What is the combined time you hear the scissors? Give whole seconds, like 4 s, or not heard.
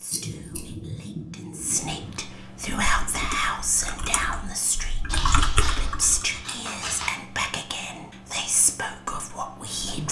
4 s.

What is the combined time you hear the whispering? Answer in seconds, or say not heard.
10 s.